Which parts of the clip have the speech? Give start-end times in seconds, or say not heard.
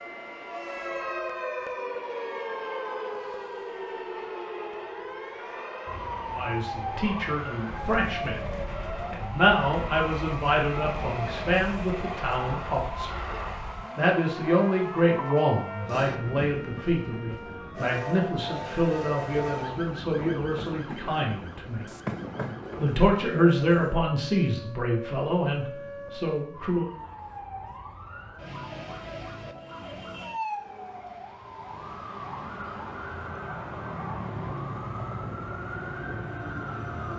6.3-8.3, 9.1-13.1, 13.9-21.9, 22.8-26.9.